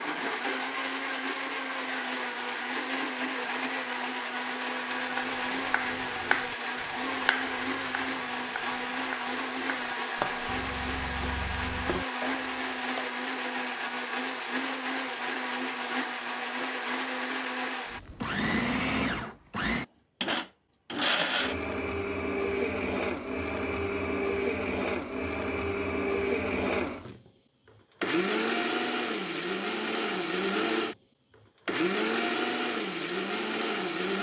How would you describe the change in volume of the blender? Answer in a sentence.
The loudness of the blender stays about the same.